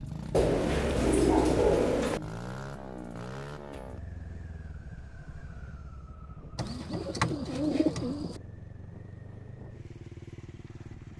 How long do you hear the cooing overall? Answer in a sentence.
The cooing can be heard for 4 seconds in total.